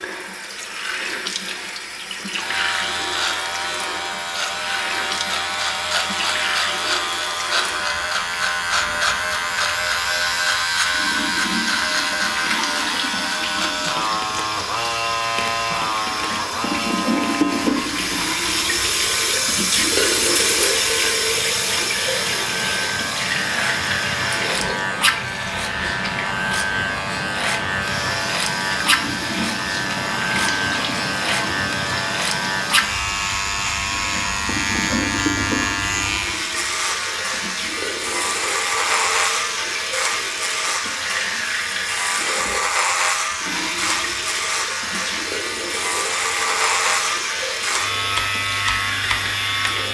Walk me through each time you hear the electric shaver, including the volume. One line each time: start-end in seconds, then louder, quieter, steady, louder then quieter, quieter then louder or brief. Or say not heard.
2.3-49.8 steady.